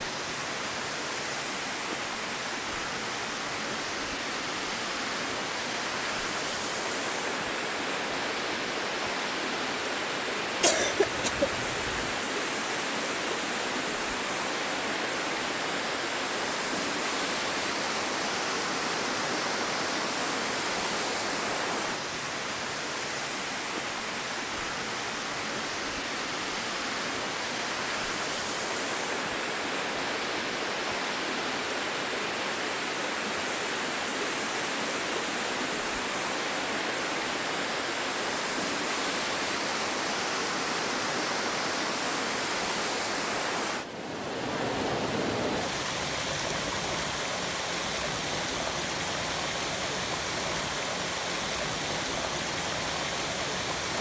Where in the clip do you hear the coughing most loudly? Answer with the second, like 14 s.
11 s.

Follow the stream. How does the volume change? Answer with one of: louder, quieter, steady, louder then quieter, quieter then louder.
steady.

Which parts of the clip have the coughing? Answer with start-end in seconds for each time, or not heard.
10.6-12.2.